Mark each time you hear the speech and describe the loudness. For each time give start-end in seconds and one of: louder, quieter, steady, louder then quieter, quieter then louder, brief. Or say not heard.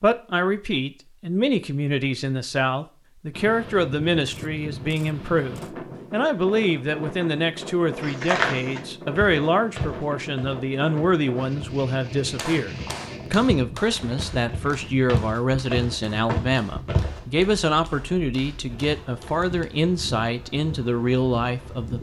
0.0-21.9 steady.